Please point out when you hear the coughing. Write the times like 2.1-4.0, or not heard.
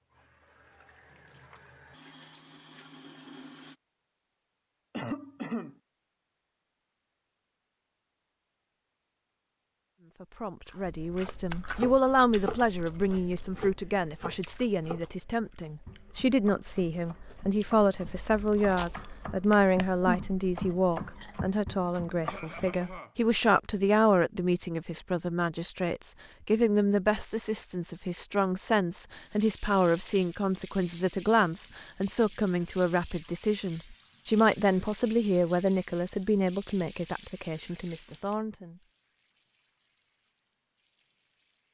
4.9-5.8, 22.2-23.1.